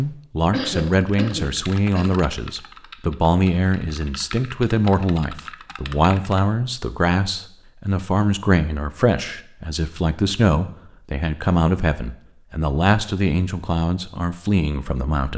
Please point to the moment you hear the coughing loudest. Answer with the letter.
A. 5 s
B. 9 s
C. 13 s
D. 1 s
D.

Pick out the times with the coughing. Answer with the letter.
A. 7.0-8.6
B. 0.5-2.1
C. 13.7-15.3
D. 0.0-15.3
B.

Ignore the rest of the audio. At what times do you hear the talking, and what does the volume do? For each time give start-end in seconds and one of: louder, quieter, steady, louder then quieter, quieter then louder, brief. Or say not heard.
0.0-15.3 steady.